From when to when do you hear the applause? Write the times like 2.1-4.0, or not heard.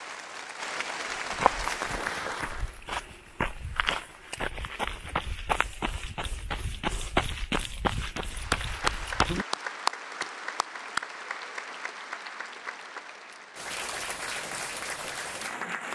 0.0-2.8, 8.2-15.8.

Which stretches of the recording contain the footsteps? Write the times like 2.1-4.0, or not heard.
1.3-9.4.